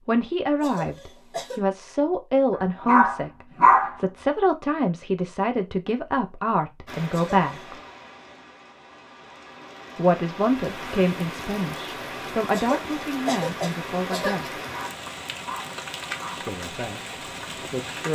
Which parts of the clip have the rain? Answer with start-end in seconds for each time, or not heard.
6.8-18.0.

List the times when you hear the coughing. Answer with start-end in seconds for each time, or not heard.
0.6-1.6, 7.1-7.7, 12.5-14.5.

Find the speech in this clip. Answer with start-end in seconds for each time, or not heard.
0.1-7.8, 9.9-14.6, 16.4-18.0.